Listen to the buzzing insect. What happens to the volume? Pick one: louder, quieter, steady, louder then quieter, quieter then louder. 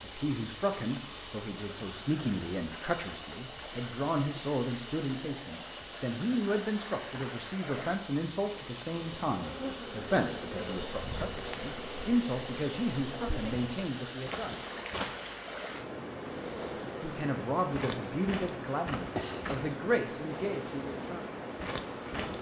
steady.